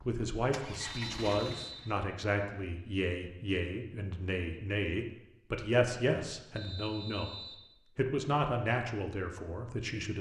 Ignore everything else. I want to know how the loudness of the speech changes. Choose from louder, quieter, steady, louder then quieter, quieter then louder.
steady.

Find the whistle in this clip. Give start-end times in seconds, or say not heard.
0.8-1.9, 6.5-7.7.